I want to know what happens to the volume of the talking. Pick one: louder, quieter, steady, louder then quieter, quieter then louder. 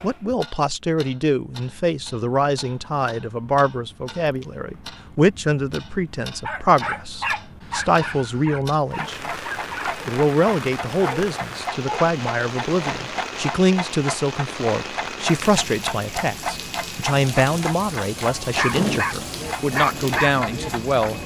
steady.